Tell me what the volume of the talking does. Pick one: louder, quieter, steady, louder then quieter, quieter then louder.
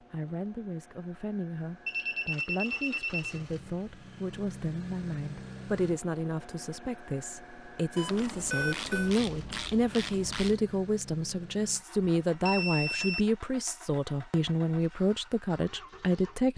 louder.